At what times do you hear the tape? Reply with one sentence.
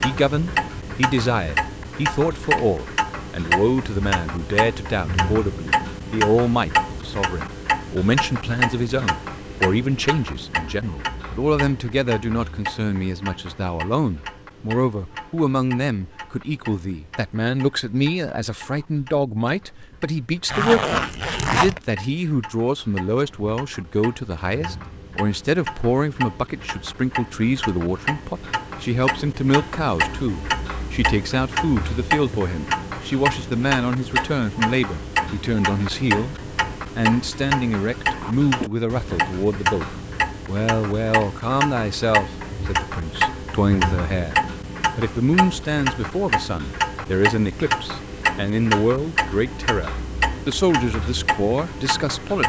The tape can't be heard in this clip.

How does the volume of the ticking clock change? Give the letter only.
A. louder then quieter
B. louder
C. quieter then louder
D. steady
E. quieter
C.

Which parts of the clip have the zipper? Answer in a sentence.
You can hear the zipper from 20.5 to 21.8 s.